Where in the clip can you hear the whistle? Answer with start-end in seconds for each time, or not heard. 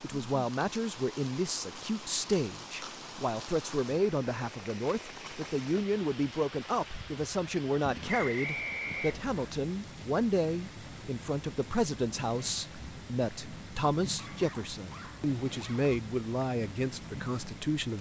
8.1-9.6.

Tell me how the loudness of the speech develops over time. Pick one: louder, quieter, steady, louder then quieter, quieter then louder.
steady.